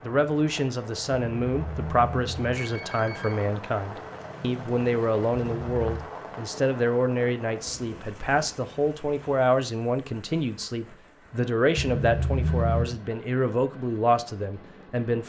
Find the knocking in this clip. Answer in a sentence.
You can't hear the knocking here.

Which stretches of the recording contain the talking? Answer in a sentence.
You can hear the talking from 0.0 to 15.2 s.